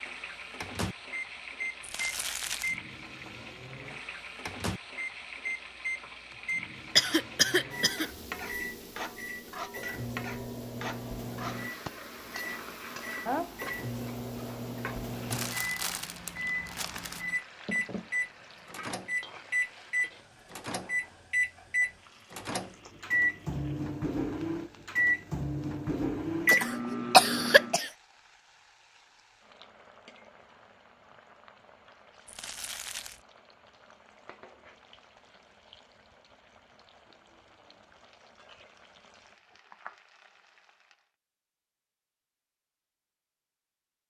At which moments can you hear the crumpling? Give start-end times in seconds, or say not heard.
1.8-2.8, 15.3-17.2, 32.2-33.2.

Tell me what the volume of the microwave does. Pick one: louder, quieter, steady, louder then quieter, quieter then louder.
louder.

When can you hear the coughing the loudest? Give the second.
27 s.